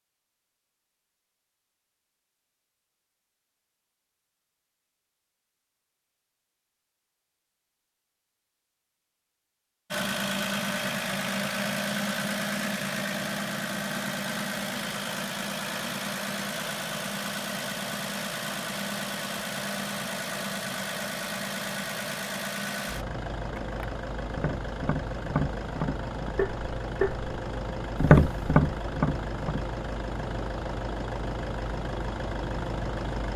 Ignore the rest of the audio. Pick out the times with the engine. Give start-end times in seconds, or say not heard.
9.9-33.3.